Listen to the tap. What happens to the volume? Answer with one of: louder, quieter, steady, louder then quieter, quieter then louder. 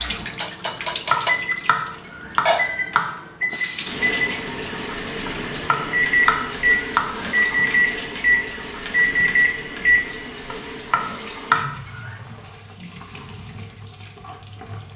quieter.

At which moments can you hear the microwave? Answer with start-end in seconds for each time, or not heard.
0.0-10.1.